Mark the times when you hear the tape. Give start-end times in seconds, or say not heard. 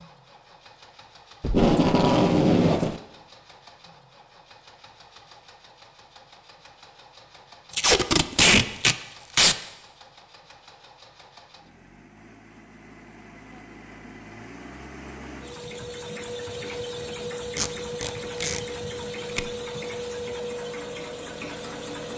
1.4-3.0, 7.7-9.6, 17.6-18.6.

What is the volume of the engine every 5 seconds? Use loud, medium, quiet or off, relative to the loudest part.
quiet, quiet, quiet, loud, loud.